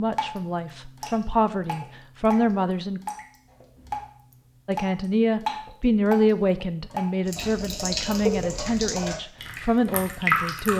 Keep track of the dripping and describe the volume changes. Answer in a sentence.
The loudness of the dripping goes up.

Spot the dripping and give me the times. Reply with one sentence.
You can hear the dripping from 0.0 to 10.7 s.